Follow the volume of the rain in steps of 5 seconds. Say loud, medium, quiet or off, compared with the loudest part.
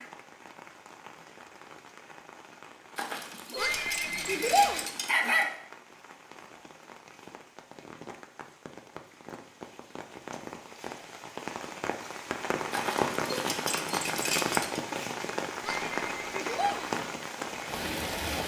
quiet, quiet, loud, loud.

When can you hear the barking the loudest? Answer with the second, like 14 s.
5 s.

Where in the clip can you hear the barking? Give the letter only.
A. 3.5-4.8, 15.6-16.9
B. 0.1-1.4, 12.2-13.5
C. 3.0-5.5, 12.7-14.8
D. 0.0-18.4
C.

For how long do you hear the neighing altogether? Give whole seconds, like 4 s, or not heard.
3 s.